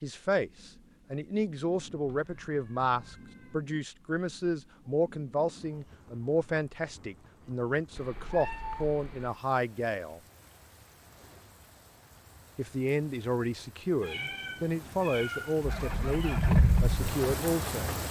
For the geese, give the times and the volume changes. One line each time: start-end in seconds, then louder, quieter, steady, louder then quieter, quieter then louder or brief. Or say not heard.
not heard.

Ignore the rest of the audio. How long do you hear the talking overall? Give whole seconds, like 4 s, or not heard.
16 s.